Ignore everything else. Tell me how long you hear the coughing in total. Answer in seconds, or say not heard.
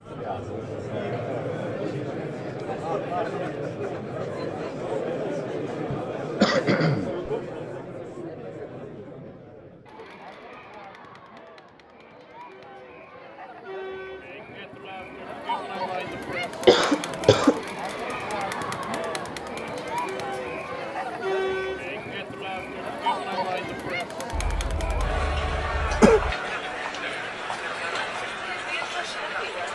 4 s.